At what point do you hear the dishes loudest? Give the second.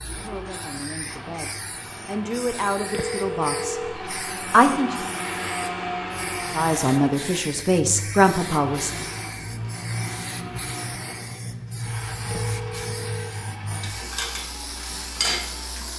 15 s.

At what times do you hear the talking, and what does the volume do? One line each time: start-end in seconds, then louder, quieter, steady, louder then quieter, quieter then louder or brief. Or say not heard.
0.1-5.0 louder then quieter
6.5-8.9 brief.